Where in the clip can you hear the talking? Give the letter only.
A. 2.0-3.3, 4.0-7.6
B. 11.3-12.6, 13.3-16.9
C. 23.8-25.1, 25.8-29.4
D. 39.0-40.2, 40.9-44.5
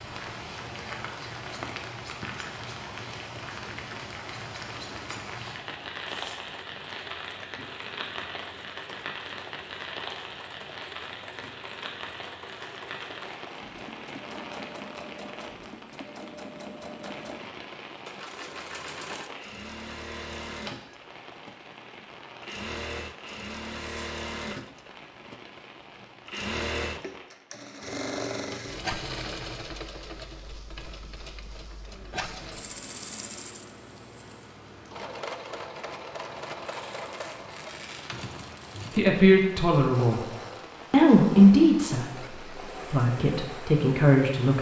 D.